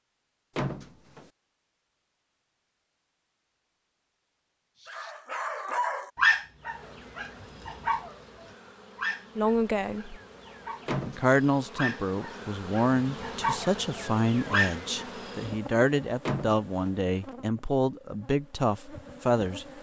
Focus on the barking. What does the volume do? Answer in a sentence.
The volume of the barking goes down, then up.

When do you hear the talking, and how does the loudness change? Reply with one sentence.
The talking can be heard briefly from 9.3 to 10.2 s; and from 11.1 to 19.6 s, at a steady volume.